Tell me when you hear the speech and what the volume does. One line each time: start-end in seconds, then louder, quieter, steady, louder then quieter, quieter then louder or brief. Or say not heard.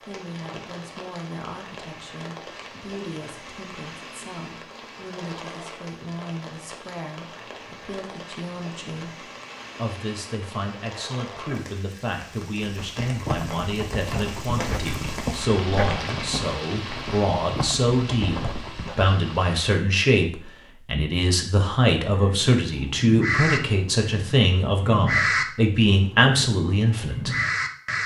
0.0-27.4 louder.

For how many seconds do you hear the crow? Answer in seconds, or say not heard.
6 s.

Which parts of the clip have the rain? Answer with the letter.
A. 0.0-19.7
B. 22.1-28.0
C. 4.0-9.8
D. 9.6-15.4
A.